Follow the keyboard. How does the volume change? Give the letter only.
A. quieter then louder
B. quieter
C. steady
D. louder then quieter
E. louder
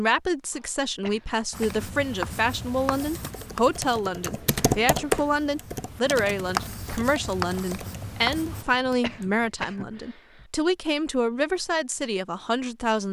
D.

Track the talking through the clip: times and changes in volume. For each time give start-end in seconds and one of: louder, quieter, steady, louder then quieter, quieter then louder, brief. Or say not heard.
0.0-13.0 steady.